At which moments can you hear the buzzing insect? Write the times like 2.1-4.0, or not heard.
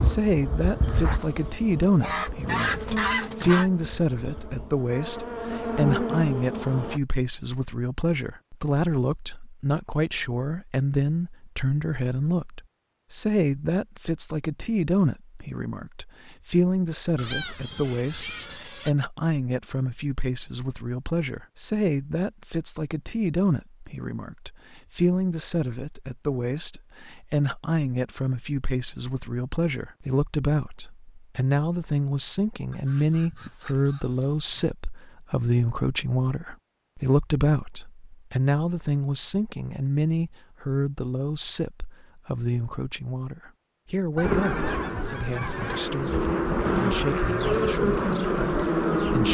0.0-7.0, 44.2-49.3.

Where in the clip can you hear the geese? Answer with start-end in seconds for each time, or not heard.
2.0-3.7, 17.1-18.9, 32.7-34.7, 44.1-46.0.